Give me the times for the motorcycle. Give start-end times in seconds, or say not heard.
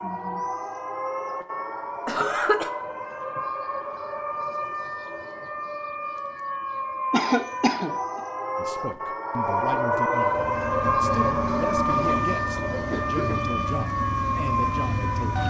10.2-15.4.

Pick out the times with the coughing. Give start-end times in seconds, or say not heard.
2.0-2.7, 7.1-7.9, 12.7-13.7.